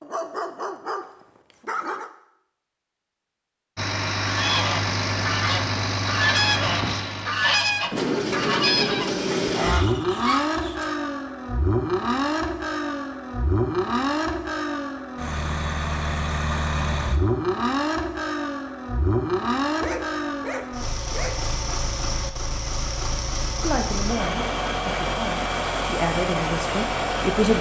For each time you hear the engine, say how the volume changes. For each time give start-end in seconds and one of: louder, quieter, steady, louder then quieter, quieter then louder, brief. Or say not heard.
3.8-27.5 steady.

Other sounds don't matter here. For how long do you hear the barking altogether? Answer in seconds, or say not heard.
4 s.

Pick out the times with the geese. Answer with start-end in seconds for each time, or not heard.
4.2-10.9.